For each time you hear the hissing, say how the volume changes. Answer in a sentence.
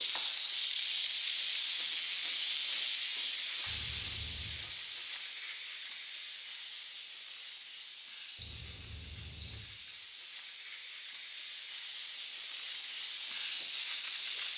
You can hear the hissing from 0.0 to 14.5 s, getting quieter then louder.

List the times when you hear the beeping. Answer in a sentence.
You can hear the beeping from 3.6 to 4.7 s and from 8.4 to 9.6 s.